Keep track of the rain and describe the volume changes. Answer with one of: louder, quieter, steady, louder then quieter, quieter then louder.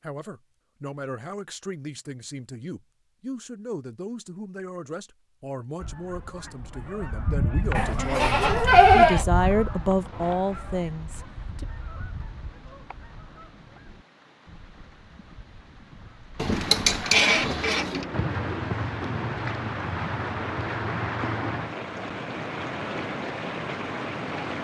louder.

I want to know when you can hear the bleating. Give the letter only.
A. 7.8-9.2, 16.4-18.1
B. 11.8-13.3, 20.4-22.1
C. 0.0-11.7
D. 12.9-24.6
A.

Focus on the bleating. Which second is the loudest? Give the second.
9 s.